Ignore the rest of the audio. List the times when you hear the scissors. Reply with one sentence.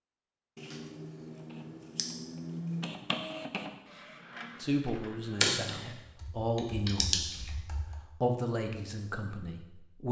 The scissors can be heard from 0.6 to 2.9 s and from 6.5 to 7.5 s.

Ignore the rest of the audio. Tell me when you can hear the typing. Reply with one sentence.
The typing can be heard from 5.4 to 8.0 s.